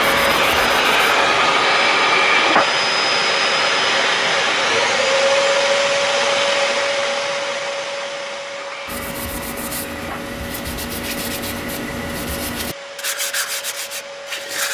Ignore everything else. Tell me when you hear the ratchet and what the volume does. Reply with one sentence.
You can't hear the ratchet here.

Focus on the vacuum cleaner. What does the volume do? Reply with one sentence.
The loudness of the vacuum cleaner goes down.